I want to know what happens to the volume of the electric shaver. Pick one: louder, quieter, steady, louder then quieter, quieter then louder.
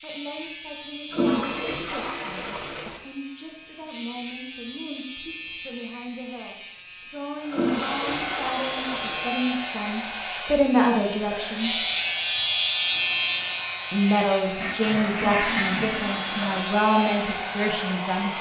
louder then quieter.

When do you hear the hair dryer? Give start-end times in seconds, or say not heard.
7.3-18.3.